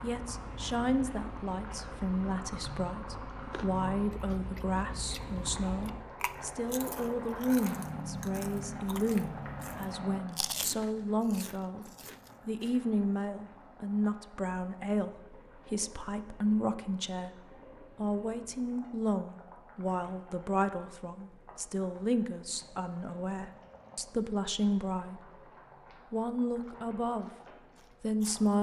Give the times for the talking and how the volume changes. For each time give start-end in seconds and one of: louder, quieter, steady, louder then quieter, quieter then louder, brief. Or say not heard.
0.0-25.2 steady
26.1-27.3 brief
28.0-28.5 brief.